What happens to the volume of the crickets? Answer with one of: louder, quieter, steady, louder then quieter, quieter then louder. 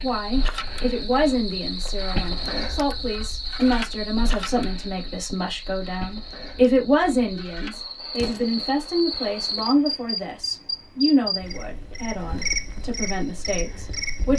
quieter then louder.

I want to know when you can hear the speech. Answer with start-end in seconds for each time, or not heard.
0.0-14.3.